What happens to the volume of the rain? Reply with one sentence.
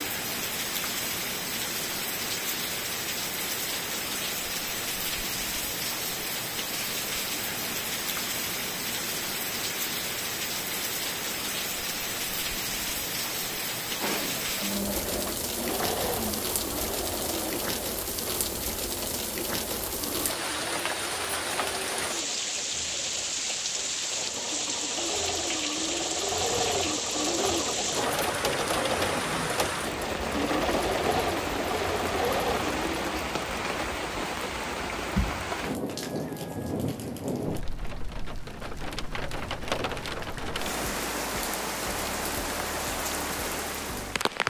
The volume of the rain stays about the same.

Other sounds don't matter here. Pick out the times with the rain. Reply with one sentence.
You can hear the rain from 0.0 to 44.4 s.